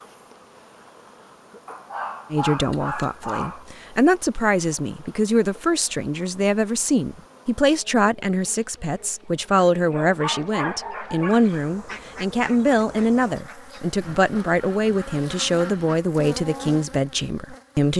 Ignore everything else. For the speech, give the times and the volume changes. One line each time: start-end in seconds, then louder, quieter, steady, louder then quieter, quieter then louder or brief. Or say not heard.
2.3-17.9 steady.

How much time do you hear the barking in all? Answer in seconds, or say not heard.
4 s.